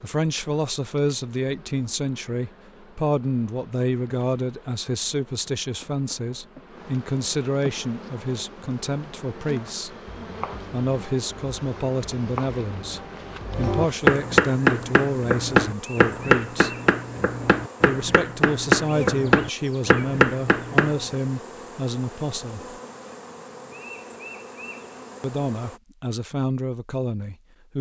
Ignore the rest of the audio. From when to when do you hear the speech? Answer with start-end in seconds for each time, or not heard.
0.0-9.9, 10.7-16.8, 17.8-22.8, 25.2-27.7.